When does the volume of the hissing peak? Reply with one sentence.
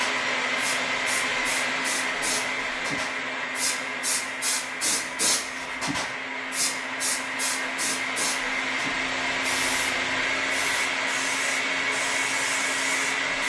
The loudest moment of the hissing is at 5 seconds.